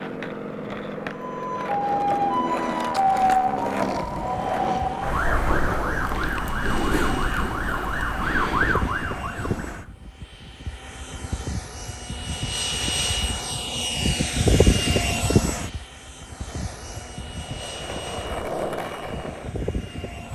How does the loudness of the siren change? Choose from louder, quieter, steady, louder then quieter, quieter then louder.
steady.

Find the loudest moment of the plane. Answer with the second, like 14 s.
15 s.